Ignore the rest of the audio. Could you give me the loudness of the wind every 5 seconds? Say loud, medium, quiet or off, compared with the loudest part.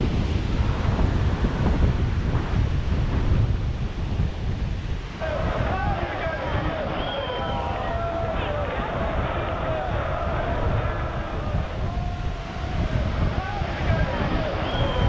loud, medium, loud.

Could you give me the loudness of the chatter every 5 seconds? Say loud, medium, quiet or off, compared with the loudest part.
off, loud, loud.